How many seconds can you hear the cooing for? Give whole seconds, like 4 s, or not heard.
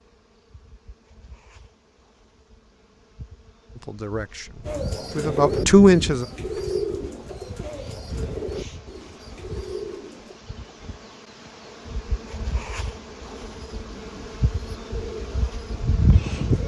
9 s.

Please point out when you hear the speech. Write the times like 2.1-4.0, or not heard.
3.8-6.2.